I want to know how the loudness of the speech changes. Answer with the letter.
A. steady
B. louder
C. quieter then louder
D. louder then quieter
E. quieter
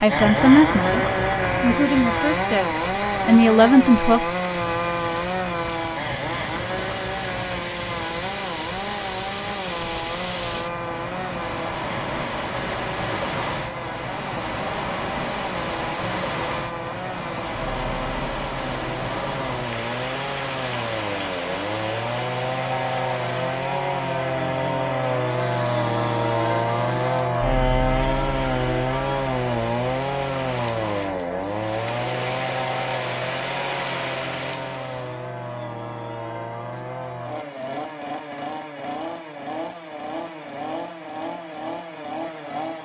C.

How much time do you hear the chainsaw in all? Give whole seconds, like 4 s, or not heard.
43 s.